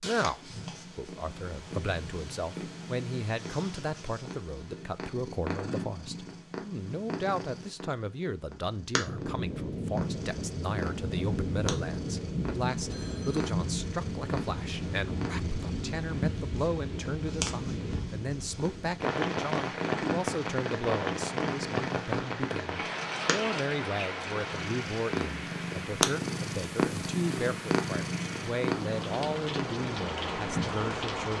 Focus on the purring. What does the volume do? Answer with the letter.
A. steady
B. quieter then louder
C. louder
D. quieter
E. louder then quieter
C.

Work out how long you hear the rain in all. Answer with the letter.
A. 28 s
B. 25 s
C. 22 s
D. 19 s
C.